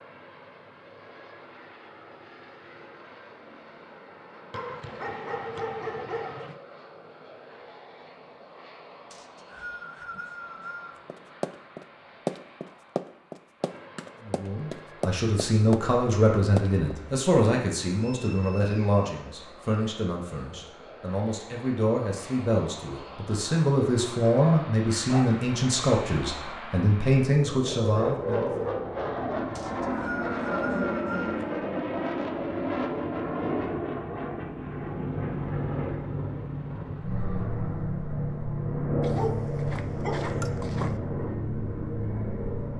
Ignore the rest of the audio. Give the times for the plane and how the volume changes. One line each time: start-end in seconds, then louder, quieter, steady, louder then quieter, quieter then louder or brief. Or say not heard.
0.0-42.7 louder.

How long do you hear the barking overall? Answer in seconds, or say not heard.
5 s.